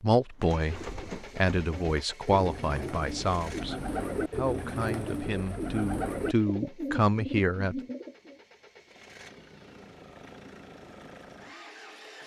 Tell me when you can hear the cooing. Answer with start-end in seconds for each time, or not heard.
0.3-8.4.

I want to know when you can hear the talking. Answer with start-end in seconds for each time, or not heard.
0.0-7.8.